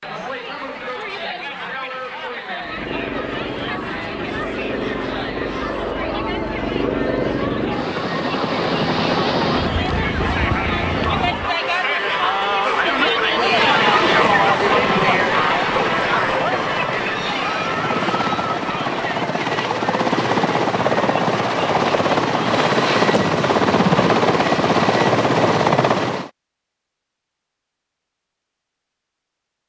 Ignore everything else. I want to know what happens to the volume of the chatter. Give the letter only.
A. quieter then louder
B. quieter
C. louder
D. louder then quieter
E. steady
D.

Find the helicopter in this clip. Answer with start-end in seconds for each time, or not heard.
2.6-11.6, 13.4-26.3.